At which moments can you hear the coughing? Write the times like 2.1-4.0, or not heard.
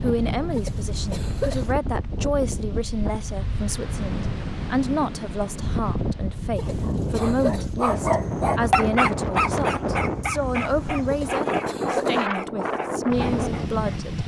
0.6-1.7, 6.5-7.7, 11.1-12.2.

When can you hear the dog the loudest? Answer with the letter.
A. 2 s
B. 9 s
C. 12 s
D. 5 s
B.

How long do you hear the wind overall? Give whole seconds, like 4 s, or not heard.
14 s.